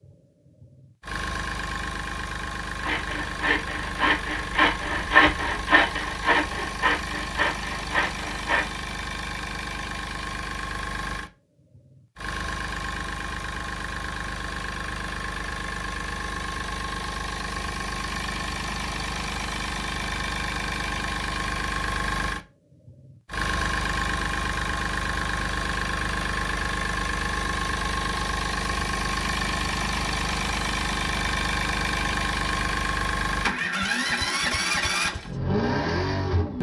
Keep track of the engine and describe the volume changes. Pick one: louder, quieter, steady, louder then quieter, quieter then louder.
louder.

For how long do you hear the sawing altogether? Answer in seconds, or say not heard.
6 s.